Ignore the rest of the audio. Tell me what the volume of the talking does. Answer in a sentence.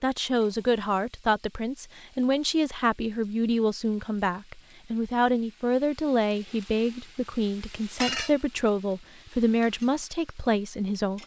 The loudness of the talking stays about the same.